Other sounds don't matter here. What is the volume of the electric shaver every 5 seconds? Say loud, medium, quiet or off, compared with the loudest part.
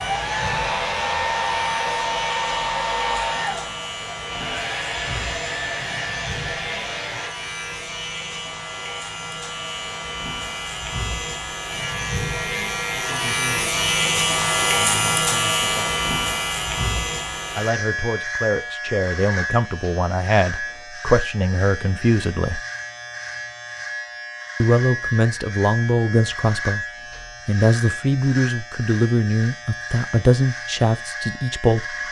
medium, medium, loud, loud, medium, medium, medium.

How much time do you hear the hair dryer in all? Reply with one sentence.
You can hear the hair dryer for 7 seconds altogether.